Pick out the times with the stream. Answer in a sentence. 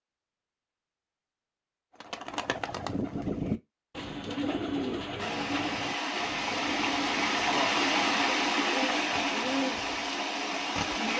The stream can be heard from 5.2 to 11.1 s.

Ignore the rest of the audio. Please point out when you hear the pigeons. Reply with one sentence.
You can hear the pigeons from 2.0 to 10.2 s.